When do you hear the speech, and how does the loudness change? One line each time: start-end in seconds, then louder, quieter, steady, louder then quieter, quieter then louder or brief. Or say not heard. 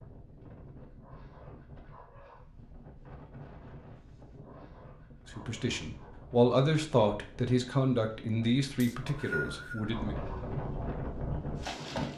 5.3-10.2 quieter.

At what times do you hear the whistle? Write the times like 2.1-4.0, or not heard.
8.8-9.9.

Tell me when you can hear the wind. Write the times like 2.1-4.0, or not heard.
0.0-12.1.